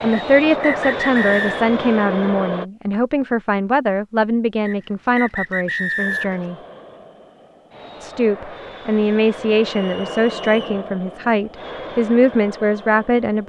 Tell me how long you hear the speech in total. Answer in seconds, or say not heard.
12 s.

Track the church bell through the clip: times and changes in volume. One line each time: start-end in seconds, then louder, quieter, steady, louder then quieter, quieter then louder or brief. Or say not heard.
not heard.